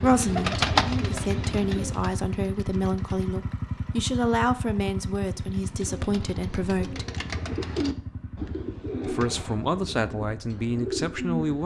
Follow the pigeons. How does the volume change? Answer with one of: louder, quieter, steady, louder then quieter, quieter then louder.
quieter then louder.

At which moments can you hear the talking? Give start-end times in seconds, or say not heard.
0.0-7.0, 9.1-11.6.